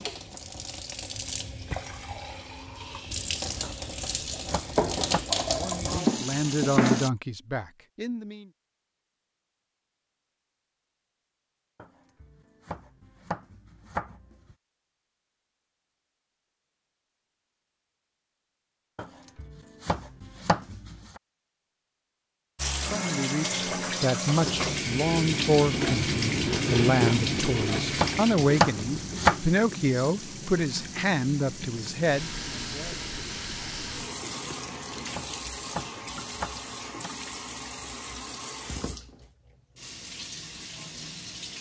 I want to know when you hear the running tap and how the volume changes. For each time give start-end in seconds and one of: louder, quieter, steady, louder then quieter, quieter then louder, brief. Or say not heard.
0.0-7.1 louder
22.6-41.5 quieter.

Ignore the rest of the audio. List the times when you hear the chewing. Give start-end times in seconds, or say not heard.
24.4-35.4.